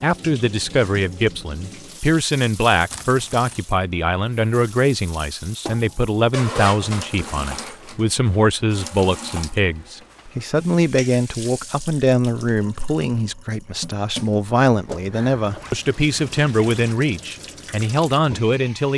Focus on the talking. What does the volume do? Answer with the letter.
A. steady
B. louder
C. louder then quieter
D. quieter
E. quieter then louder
A.